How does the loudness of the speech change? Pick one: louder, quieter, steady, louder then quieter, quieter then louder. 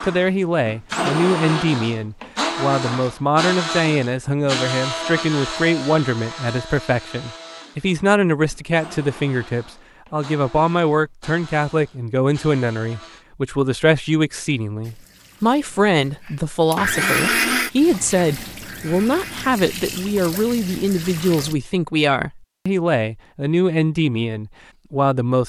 steady.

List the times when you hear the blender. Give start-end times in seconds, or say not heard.
0.0-13.2, 16.2-19.6.